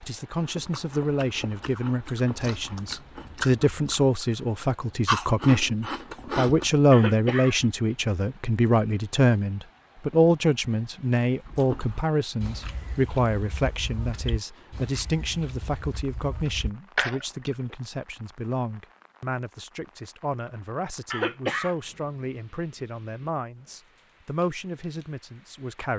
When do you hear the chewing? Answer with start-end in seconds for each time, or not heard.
0.3-6.8, 11.3-17.8.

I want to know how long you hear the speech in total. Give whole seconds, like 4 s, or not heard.
26 s.